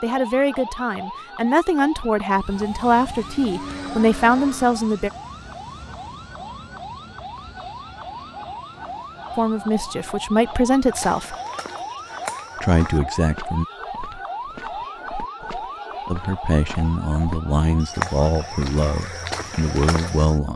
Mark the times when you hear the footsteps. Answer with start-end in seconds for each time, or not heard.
10.9-20.4.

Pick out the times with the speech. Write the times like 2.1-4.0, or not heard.
0.0-5.1, 9.3-11.3, 12.6-13.7, 16.1-20.5.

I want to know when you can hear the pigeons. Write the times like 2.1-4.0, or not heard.
not heard.